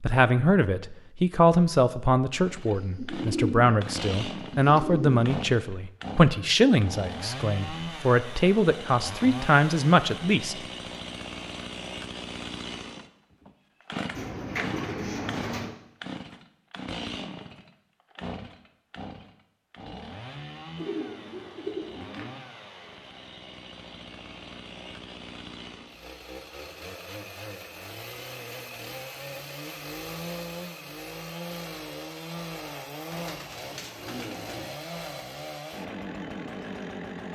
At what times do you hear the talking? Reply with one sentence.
The talking can be heard from 0.0 to 10.6 s.